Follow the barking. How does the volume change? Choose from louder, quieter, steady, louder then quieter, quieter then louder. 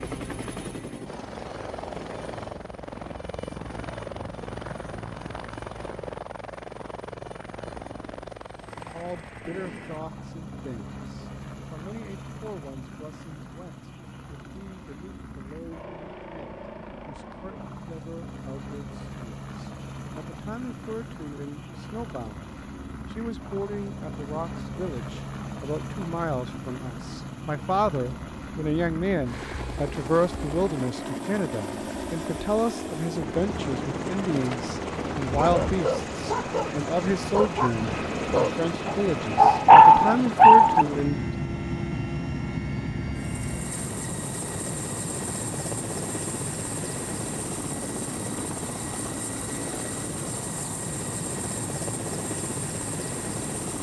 louder.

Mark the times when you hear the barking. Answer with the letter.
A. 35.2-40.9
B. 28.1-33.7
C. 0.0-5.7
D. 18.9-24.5
A.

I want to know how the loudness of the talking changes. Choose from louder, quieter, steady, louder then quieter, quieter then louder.
louder.